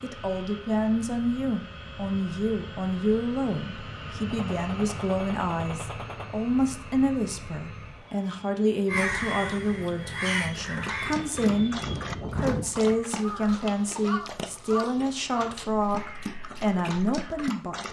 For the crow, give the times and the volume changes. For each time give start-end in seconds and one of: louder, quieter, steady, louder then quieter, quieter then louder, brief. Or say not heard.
8.8-17.5 quieter.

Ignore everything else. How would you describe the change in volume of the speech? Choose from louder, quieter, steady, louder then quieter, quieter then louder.
steady.